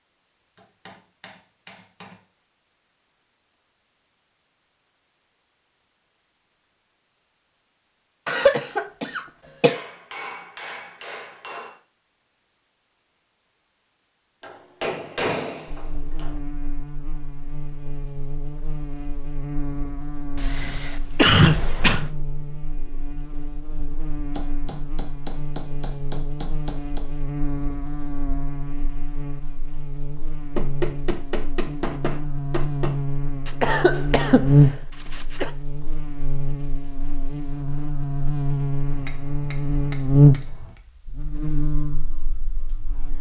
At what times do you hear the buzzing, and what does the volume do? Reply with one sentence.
You can hear the buzzing from 15.7 to 43.1 s, getting louder.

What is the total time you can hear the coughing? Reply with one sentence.
You can hear the coughing for 5 seconds altogether.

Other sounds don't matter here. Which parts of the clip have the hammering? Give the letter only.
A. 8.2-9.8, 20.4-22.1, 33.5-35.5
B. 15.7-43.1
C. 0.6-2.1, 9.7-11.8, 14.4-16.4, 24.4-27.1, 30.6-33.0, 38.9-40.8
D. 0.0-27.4
C.